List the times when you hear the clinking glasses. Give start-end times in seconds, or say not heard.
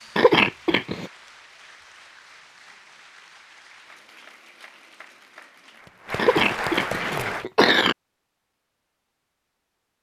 not heard.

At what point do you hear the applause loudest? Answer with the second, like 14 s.
7 s.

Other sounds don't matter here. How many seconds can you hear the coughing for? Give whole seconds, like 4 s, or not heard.
3 s.